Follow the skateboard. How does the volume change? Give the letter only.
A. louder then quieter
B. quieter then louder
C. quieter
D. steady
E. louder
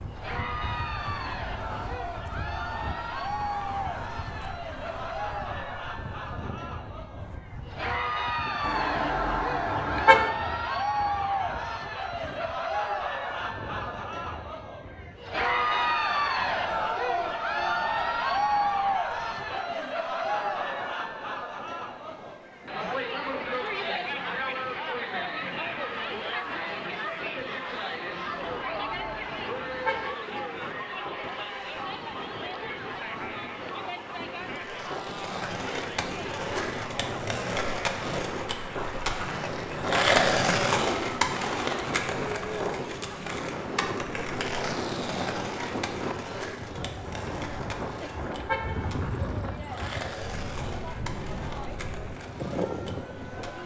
A.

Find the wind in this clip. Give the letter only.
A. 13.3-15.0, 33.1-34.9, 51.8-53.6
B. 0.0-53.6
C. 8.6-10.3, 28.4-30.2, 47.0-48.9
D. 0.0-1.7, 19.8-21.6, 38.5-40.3
B.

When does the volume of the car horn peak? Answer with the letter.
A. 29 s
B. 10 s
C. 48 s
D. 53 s
B.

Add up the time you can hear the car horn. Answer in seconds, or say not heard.
5 s.